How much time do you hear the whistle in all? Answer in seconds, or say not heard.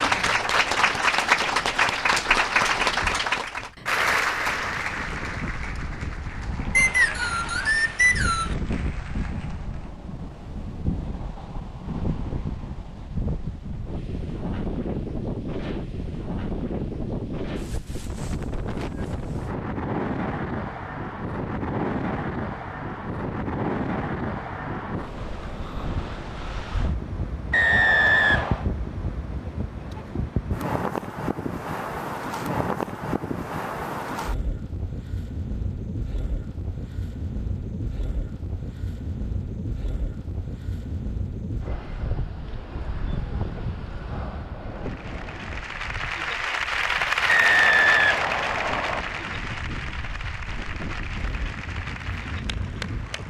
5 s.